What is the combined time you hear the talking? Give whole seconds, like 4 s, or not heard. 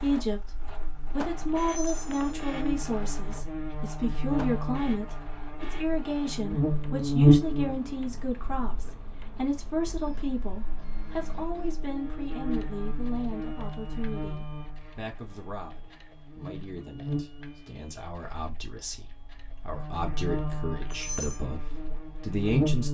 23 s.